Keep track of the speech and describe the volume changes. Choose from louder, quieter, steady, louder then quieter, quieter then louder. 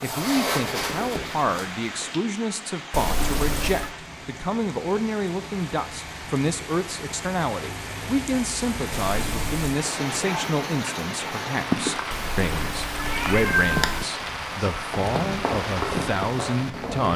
steady.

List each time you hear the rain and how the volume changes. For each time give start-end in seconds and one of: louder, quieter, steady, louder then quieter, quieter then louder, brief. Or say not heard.
0.0-17.1 louder.